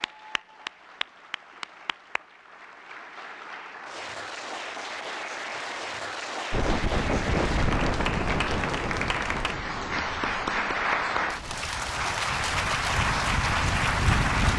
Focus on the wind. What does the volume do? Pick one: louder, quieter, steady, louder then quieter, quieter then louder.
quieter then louder.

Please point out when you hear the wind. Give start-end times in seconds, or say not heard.
6.5-14.5.